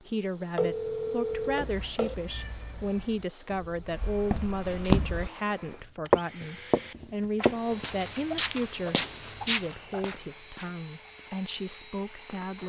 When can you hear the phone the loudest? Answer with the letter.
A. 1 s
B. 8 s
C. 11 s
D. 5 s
A.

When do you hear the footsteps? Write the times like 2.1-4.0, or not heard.
3.5-5.3, 6.1-12.6.